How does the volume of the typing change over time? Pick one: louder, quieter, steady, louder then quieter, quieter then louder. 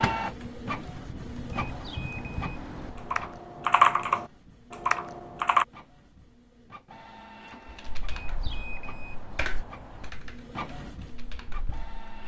louder then quieter.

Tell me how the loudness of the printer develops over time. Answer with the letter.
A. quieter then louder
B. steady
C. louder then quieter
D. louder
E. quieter
A.